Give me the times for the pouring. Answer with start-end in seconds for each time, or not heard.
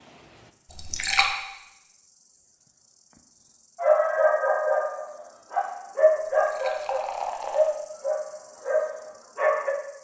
0.7-1.4, 6.3-7.8.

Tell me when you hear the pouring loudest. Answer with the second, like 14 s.
1 s.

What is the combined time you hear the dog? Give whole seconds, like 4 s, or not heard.
6 s.